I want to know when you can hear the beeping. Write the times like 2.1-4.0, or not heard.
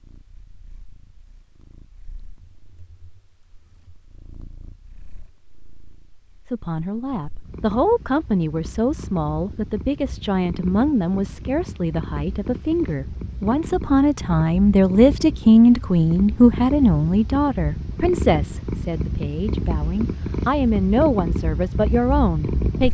not heard.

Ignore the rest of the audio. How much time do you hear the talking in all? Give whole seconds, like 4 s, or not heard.
16 s.